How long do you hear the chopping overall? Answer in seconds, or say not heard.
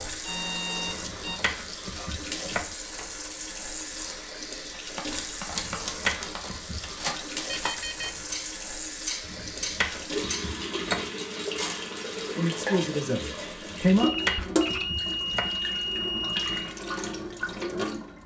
7 s.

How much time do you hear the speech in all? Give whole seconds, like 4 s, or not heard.
2 s.